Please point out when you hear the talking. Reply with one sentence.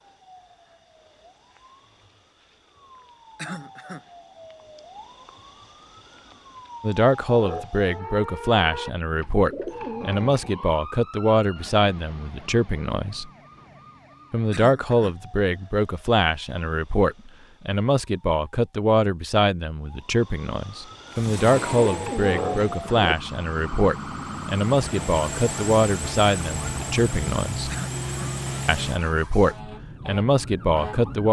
The talking can be heard from 6.8 to 13.3 s, from 14.3 to 27.7 s and from 28.6 to 31.2 s.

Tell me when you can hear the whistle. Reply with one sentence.
You can't hear the whistle here.